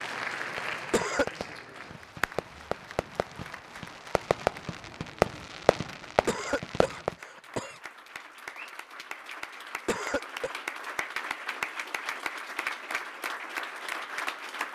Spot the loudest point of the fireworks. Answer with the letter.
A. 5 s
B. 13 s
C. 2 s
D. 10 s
A.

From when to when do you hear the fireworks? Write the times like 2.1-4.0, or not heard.
0.6-7.2.